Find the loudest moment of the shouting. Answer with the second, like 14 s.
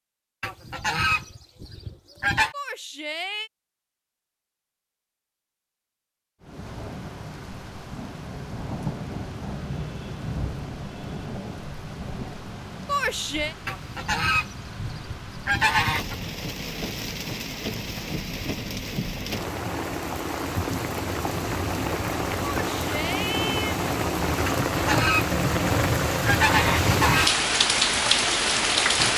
13 s.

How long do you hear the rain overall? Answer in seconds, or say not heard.
23 s.